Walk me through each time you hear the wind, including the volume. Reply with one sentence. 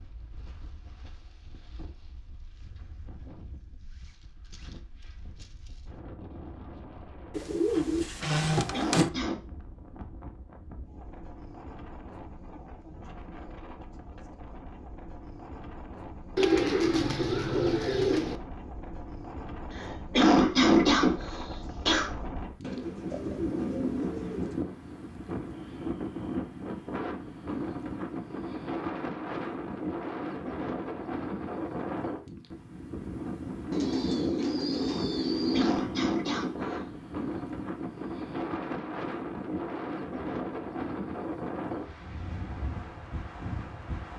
You can hear the wind from 0.0 to 44.1 s, getting louder.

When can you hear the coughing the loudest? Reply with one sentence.
The loudest moment of the coughing is at 21 seconds.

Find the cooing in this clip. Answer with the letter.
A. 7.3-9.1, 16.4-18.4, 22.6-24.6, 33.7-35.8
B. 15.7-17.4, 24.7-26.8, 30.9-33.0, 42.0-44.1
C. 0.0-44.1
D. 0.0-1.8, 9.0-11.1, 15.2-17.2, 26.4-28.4
A.